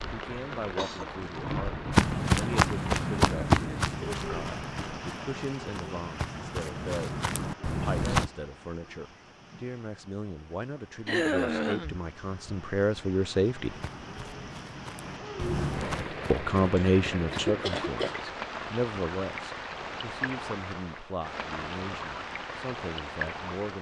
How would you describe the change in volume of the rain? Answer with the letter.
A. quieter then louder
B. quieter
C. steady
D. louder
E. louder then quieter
A.